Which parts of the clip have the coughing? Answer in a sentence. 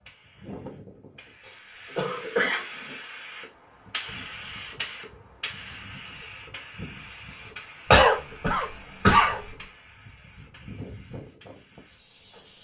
The coughing can be heard from 1.4 to 3.0 s and from 7.9 to 9.4 s.